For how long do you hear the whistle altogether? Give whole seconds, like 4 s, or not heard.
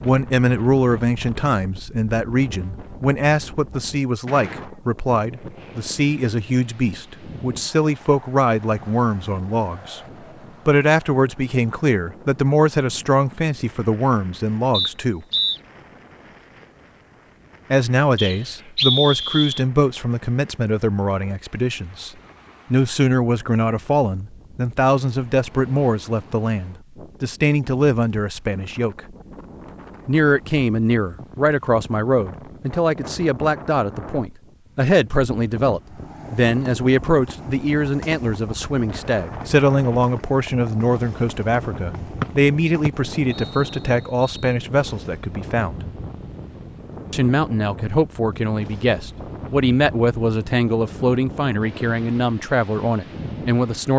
4 s.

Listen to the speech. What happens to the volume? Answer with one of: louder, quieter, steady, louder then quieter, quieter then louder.
steady.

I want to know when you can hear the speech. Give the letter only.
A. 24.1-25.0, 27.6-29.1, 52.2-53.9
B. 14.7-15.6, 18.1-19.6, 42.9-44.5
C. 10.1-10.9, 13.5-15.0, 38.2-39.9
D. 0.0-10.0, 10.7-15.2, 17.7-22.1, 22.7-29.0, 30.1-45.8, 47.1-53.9
D.